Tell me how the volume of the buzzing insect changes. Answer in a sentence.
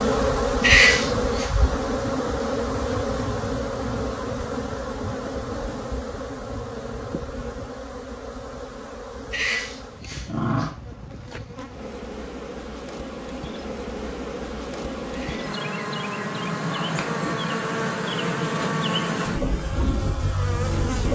The loudness of the buzzing insect goes down, then up.